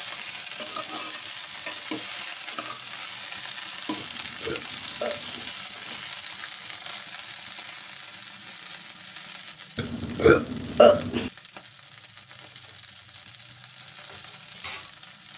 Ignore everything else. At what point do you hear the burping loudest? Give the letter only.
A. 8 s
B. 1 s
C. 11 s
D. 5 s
C.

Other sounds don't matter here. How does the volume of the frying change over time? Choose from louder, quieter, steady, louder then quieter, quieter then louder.
quieter.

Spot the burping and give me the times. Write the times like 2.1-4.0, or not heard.
4.0-5.5, 9.8-11.3.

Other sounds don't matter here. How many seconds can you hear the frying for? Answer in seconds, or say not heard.
15 s.